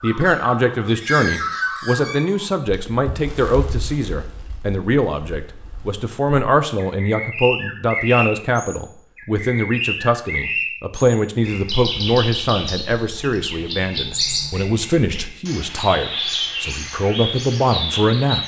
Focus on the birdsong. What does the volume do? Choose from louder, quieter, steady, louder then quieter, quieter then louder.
quieter then louder.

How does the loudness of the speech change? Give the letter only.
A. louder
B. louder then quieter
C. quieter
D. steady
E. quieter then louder
D.